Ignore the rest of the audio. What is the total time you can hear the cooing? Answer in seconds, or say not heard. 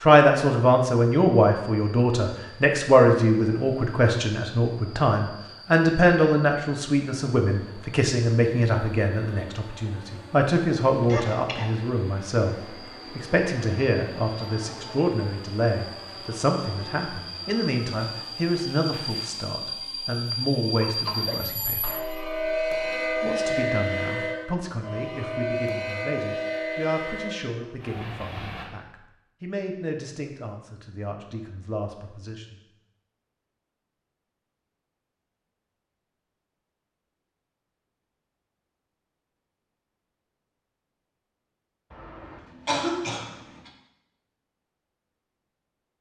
not heard.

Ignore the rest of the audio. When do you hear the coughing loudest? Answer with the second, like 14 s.
43 s.